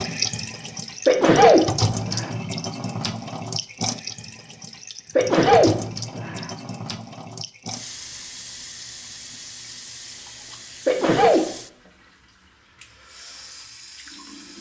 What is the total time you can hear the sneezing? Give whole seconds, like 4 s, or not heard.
3 s.